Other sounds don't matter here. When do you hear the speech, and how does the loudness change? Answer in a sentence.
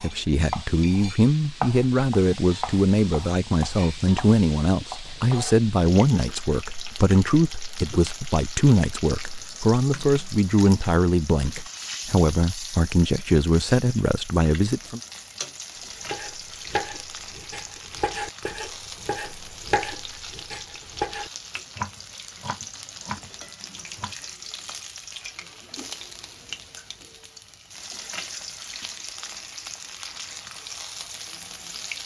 The speech can be heard from 0.0 to 15.0 s, at a steady volume.